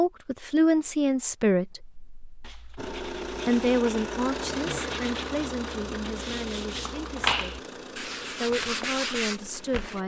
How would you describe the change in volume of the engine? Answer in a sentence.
The loudness of the engine goes down.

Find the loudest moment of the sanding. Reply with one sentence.
The volume of the sanding peaks at 7 seconds.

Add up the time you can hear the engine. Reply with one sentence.
The engine can be heard for 7 seconds in total.